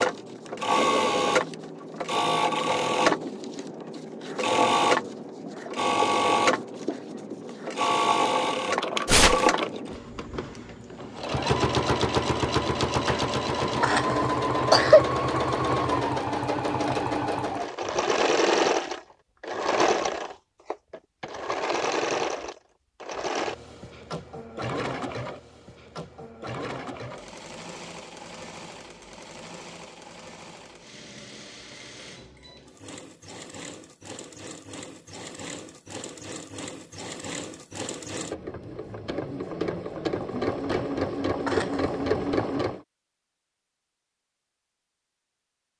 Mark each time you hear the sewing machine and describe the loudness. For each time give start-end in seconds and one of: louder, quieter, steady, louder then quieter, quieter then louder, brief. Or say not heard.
0.0-42.8 quieter then louder.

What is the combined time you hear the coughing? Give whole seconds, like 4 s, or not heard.
3 s.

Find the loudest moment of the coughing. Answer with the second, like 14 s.
15 s.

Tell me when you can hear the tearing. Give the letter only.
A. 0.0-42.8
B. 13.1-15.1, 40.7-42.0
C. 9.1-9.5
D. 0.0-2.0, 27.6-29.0
C.